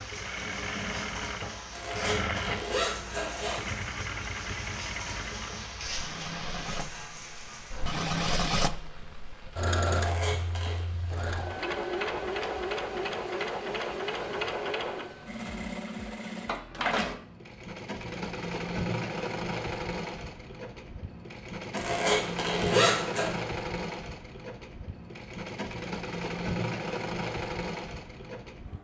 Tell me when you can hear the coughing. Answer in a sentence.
The coughing can't be heard in this clip.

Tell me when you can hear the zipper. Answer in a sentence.
The zipper can be heard from 1.7 to 3.7 s, from 9.9 to 10.8 s and from 21.8 to 23.3 s.